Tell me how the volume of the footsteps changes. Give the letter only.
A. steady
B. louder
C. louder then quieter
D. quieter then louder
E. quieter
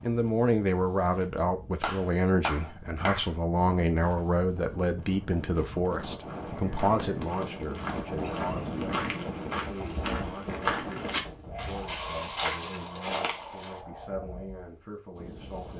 B.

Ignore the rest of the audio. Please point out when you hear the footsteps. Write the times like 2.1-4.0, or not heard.
6.2-13.8.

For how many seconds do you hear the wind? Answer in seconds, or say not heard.
16 s.